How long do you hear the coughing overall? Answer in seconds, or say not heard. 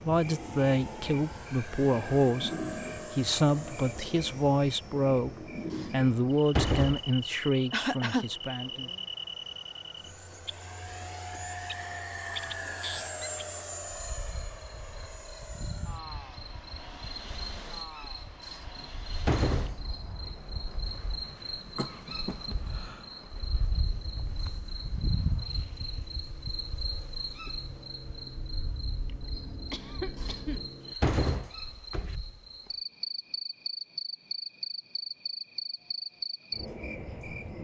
3 s.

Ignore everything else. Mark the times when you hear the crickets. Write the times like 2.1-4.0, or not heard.
0.0-37.5.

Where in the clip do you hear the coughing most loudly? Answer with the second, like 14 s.
8 s.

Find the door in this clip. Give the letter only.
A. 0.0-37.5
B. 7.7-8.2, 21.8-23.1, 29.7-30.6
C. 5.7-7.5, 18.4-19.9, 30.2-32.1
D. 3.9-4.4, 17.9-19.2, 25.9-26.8
C.